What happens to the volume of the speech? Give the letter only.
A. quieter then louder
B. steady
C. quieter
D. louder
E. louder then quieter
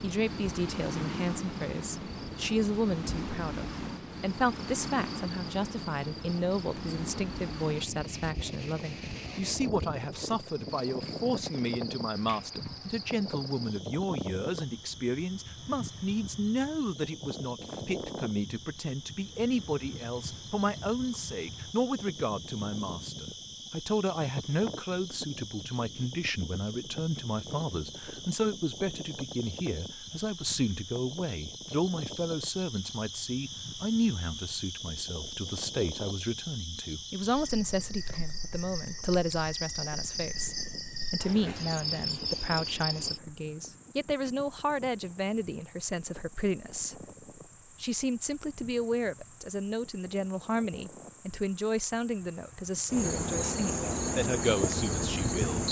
B.